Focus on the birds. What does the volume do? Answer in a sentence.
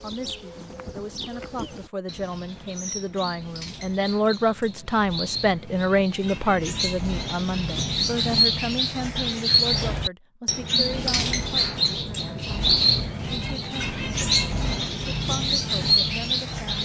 The loudness of the birds goes up.